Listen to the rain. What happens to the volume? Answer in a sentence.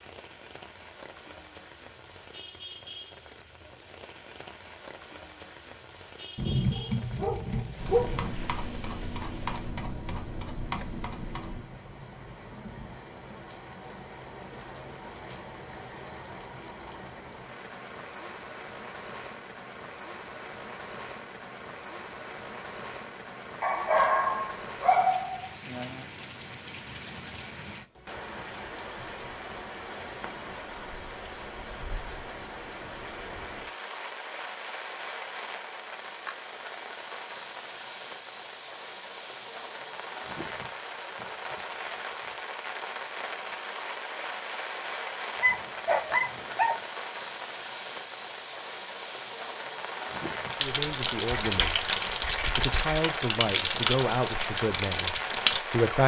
The volume of the rain goes up.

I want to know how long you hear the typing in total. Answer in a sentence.
The typing can be heard for 10 seconds in total.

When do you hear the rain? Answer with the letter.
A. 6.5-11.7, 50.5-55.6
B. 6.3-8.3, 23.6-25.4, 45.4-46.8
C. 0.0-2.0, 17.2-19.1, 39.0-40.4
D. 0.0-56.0
D.